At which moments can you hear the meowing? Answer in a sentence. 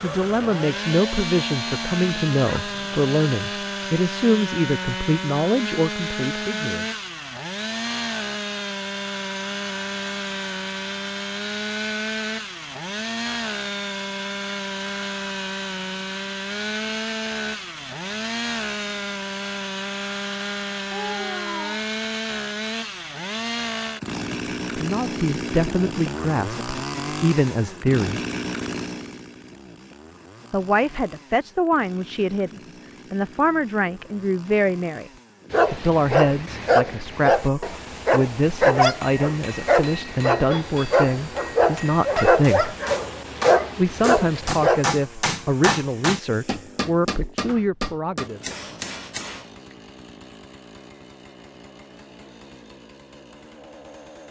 The meowing can be heard from 20.9 to 21.9 s.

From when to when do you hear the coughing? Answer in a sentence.
The coughing can't be heard in this clip.